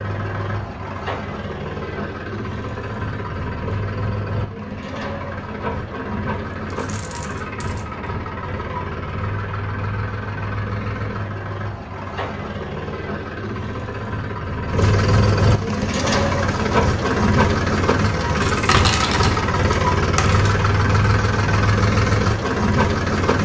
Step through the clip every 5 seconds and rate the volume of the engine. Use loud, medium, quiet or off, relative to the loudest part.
medium, medium, medium, loud, loud.